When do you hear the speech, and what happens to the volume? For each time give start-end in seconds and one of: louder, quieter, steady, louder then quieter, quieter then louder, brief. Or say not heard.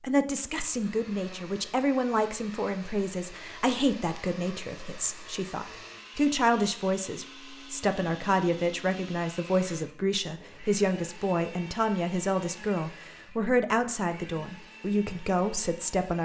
0.0-16.2 steady.